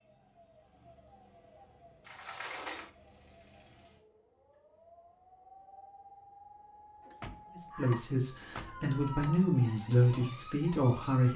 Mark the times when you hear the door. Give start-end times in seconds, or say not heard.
2.0-2.9, 7.0-9.3.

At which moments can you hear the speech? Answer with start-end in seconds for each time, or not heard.
7.5-11.3.